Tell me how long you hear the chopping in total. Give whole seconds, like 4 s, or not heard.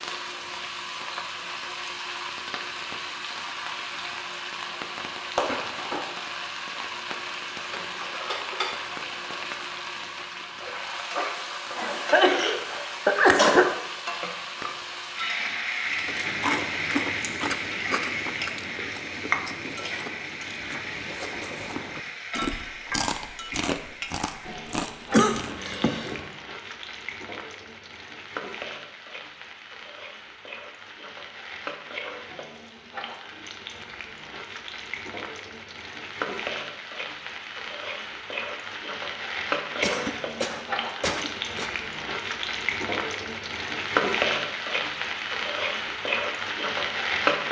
not heard.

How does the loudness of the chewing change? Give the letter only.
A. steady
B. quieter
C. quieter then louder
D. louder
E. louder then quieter
C.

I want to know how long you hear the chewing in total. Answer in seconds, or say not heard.
10 s.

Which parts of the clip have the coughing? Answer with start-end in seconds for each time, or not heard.
11.8-13.7, 25.1-26.2, 39.8-41.7.